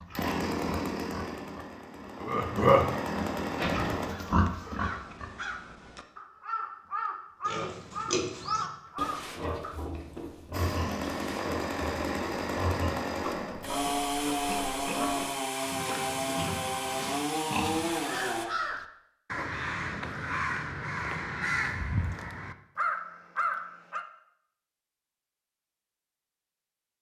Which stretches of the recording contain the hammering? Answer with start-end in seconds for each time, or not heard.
not heard.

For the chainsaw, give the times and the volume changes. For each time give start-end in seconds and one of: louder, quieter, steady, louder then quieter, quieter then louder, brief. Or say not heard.
0.0-4.1 quieter then louder
10.5-18.4 steady.